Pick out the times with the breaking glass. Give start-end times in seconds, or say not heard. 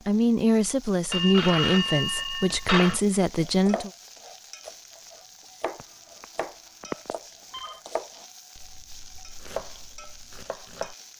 not heard.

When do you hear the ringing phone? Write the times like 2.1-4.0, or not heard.
1.1-3.0, 5.8-7.8.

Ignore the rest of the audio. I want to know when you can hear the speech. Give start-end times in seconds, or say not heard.
0.1-3.9.